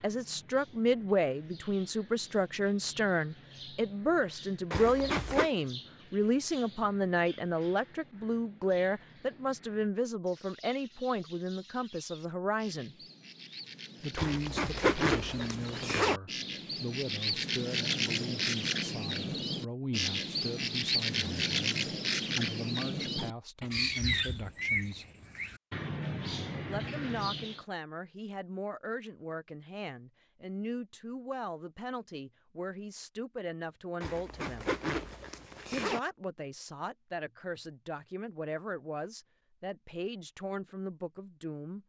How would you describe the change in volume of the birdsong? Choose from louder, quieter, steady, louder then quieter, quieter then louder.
louder.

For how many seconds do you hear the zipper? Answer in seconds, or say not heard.
5 s.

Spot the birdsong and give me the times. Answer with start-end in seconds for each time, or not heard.
0.0-27.6.